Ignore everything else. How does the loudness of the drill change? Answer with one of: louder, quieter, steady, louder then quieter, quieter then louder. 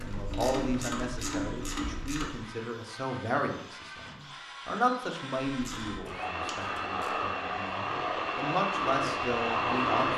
louder.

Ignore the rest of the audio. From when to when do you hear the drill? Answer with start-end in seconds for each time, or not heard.
0.0-10.1.